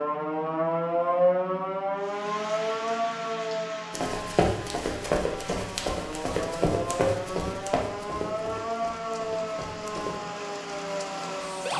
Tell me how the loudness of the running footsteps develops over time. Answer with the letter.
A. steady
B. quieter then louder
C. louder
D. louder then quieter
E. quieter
E.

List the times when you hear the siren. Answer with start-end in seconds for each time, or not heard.
0.0-11.7.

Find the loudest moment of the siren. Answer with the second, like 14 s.
1 s.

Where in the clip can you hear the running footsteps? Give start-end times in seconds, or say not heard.
3.9-10.2.